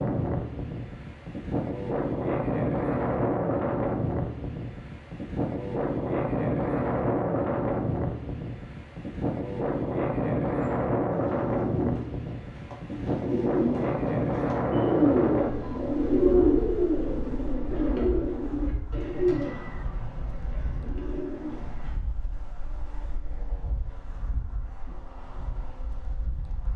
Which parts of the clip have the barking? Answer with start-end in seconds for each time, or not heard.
not heard.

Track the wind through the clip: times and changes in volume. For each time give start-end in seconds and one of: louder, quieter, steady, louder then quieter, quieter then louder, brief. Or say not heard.
0.0-26.7 quieter.